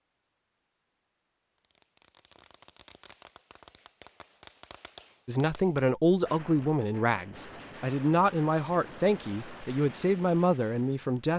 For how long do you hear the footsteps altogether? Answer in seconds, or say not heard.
not heard.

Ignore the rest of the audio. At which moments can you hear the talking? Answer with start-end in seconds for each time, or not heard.
5.2-11.3.